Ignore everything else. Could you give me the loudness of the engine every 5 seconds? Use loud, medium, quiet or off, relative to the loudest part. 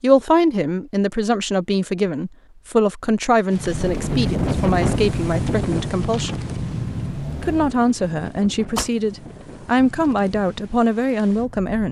loud, loud, off.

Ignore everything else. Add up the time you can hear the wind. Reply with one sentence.
You can hear the wind for 8 seconds altogether.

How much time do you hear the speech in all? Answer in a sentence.
You can hear the speech for 11 seconds altogether.